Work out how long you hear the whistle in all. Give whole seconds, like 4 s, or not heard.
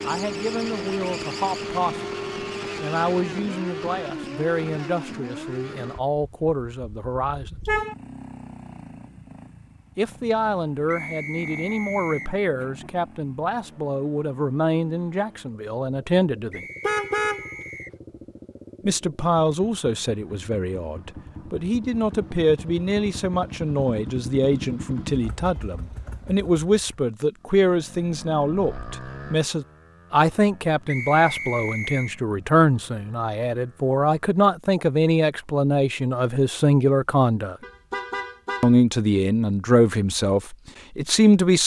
4 s.